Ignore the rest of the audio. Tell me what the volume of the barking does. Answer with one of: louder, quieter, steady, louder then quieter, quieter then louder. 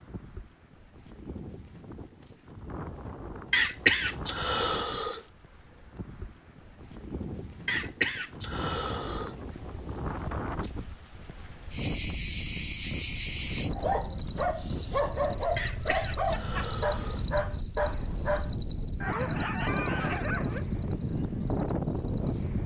steady.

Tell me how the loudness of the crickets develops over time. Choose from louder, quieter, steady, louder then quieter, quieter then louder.
louder then quieter.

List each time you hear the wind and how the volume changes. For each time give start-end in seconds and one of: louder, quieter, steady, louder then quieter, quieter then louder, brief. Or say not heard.
0.0-22.6 louder.